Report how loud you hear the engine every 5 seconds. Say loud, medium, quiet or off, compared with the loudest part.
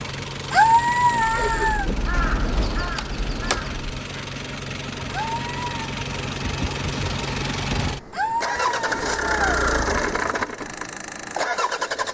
medium, loud, loud.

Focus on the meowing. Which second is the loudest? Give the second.
1 s.